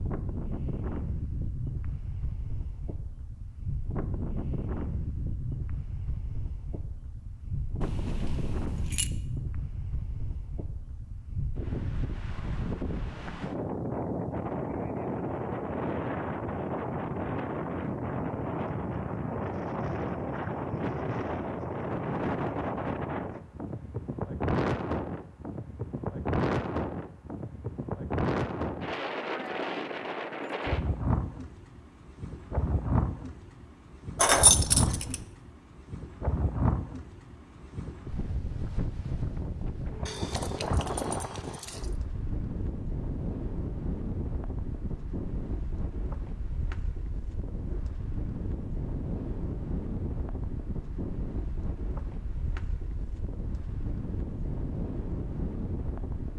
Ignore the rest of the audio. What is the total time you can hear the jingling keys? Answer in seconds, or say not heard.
4 s.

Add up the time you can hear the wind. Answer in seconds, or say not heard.
56 s.